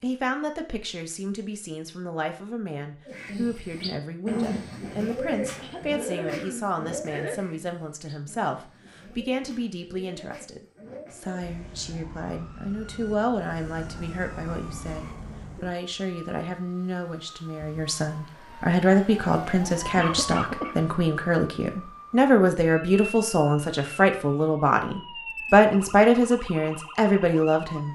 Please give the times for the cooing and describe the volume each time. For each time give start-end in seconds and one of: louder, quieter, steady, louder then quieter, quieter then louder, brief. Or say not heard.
3.0-11.4 quieter.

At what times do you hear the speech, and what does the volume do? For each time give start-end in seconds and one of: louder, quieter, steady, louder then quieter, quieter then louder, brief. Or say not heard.
0.0-27.8 louder.